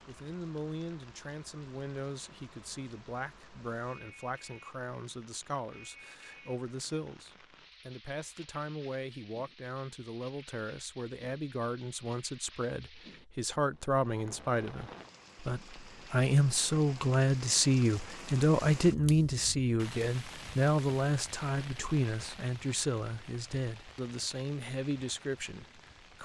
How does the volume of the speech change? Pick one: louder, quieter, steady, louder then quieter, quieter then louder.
louder then quieter.